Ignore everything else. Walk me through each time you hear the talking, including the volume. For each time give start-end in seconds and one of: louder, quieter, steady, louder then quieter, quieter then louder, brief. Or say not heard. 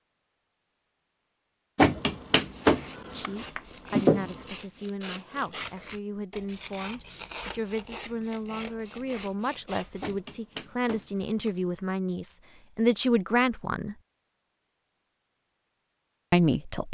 3.0-13.9 louder
16.3-16.8 brief.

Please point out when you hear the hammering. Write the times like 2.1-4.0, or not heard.
1.8-4.4, 10.0-11.8.